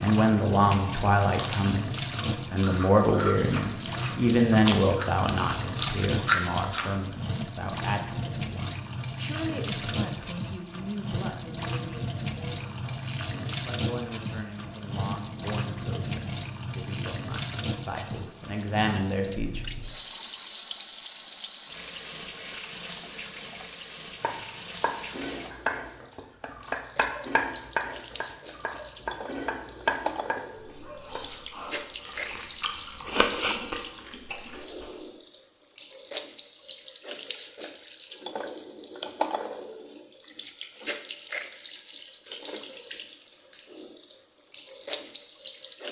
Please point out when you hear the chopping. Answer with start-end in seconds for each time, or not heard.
24.2-31.4.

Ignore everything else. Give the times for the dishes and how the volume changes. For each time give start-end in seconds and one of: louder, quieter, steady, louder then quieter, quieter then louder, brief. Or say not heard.
not heard.